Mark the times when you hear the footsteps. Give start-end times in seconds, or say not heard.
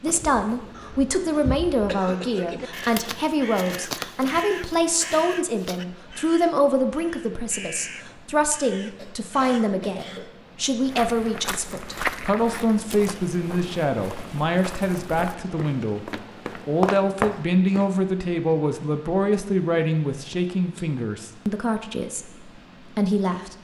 10.8-17.9.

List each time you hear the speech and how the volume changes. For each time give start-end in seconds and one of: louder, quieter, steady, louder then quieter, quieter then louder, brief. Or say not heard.
0.0-23.5 steady.